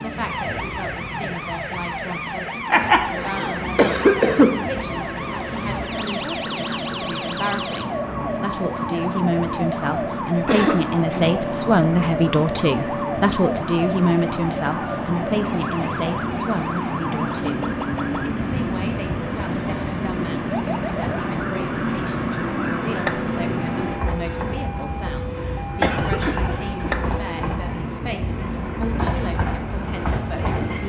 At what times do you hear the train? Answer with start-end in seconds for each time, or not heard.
0.0-30.8.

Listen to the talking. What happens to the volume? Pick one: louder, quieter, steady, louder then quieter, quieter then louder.
louder then quieter.